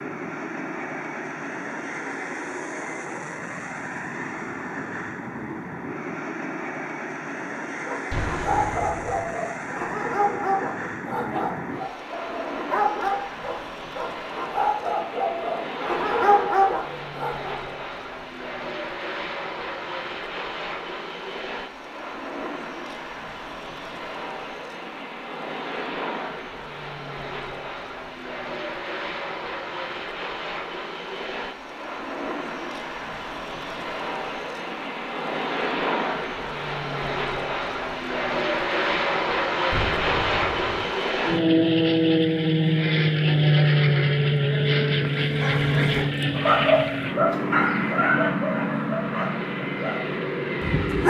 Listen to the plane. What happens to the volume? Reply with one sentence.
The volume of the plane goes up.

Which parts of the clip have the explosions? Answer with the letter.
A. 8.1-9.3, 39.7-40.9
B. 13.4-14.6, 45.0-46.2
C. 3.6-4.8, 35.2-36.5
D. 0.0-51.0
A.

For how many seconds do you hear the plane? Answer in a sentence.
The plane can be heard for 51 seconds in total.